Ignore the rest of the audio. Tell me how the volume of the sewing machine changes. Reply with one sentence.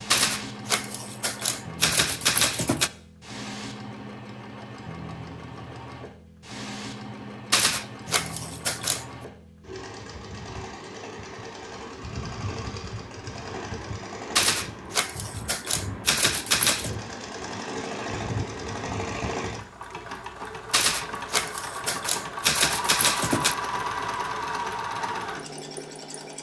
The volume of the sewing machine goes up.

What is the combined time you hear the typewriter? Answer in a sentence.
The typewriter can be heard for 10 seconds in total.